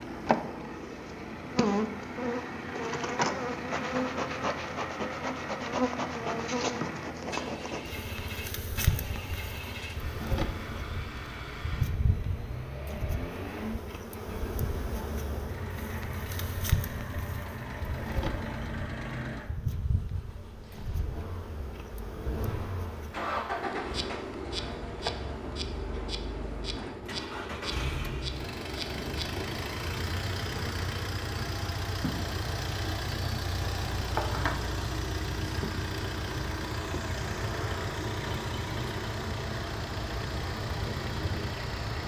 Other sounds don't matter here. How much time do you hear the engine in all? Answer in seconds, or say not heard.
42 s.